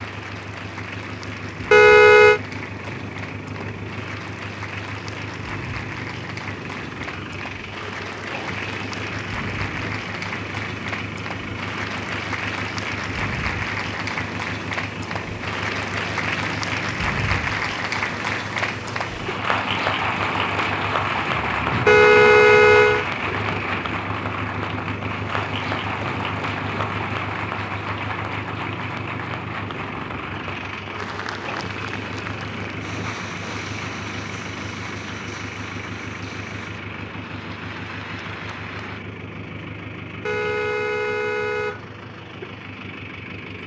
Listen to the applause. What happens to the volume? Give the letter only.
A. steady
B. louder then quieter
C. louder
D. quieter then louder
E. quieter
B.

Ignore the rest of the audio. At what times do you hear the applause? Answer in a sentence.
The applause can be heard from 0.0 to 39.0 s.